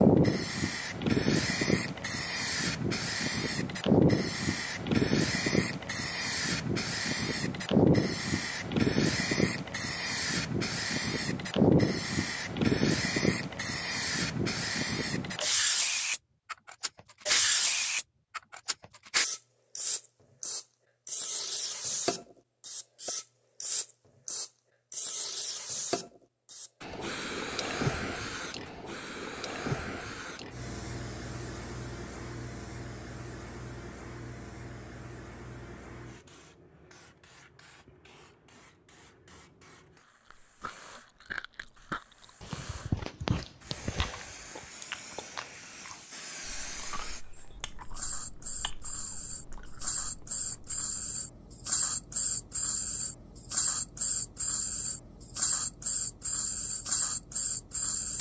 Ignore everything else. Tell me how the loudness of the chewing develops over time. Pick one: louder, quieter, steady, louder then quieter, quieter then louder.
quieter.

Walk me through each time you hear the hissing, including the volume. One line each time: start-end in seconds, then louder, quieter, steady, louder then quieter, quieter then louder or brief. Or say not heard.
0.0-58.1 quieter then louder.